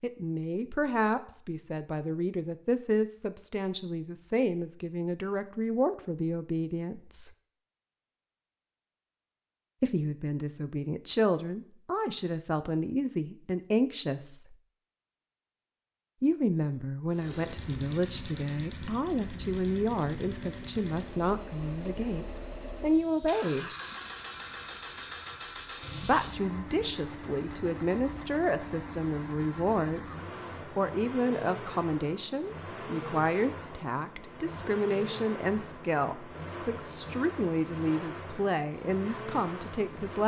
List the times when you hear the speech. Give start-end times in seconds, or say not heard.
0.0-7.3, 9.8-14.6, 16.2-23.7, 26.0-40.2.